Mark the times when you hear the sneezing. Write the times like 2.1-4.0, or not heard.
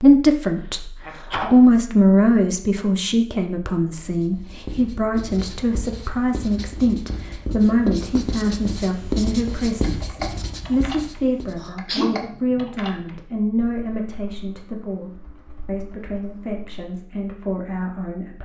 1.0-1.5, 11.6-12.2.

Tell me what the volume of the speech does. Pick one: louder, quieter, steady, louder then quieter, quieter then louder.
quieter.